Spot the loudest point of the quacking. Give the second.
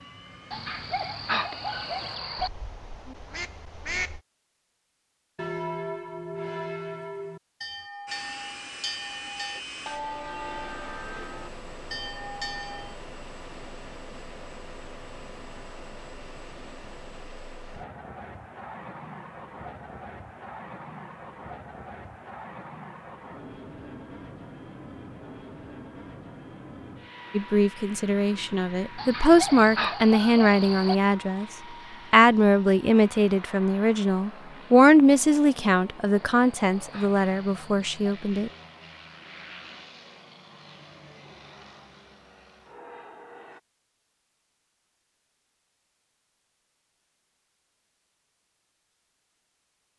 4 s.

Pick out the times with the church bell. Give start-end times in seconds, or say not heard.
5.3-12.9.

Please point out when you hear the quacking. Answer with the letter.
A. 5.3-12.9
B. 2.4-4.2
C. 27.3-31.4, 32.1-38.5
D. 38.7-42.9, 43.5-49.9
B.